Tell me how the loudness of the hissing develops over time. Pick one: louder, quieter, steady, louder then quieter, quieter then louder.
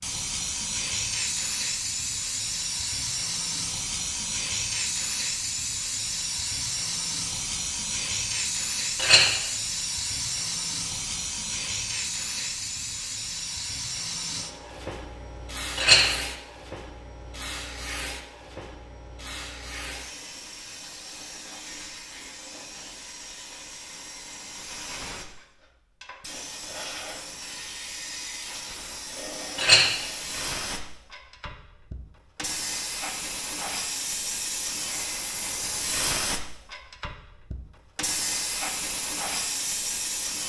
quieter then louder.